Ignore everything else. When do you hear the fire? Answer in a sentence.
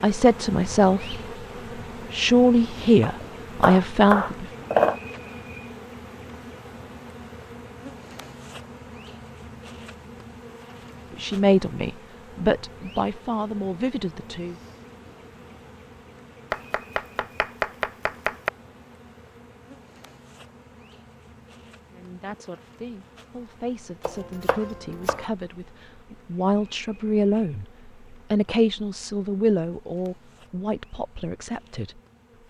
The fire can't be heard in this clip.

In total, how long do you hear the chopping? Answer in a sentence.
The chopping can be heard for 5 seconds in total.